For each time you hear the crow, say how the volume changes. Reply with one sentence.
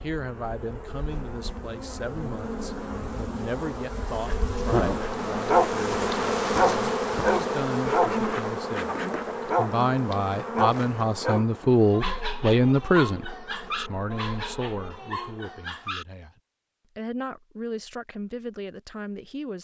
The crow can't be heard in this clip.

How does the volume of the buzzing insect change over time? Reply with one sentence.
The loudness of the buzzing insect goes up, then down.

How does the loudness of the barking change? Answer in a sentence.
The volume of the barking goes down.